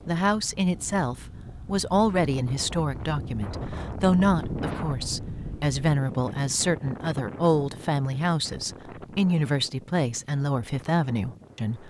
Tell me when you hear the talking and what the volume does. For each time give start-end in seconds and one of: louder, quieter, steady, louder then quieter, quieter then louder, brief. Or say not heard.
0.1-11.8 steady.